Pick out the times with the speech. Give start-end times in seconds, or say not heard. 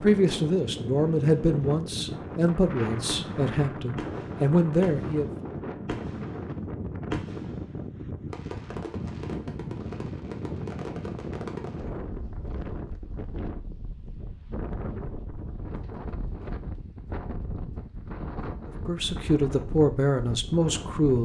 0.0-5.3, 18.9-21.2.